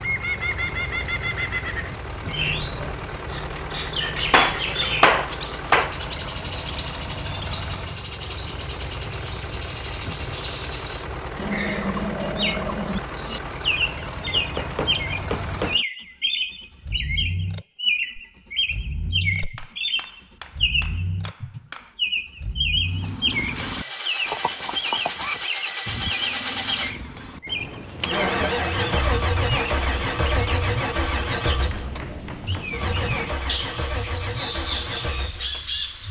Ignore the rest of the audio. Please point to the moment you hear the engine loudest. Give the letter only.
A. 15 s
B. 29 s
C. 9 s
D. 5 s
B.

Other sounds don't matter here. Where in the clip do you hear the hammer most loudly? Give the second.
5 s.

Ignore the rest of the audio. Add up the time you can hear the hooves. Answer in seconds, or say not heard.
8 s.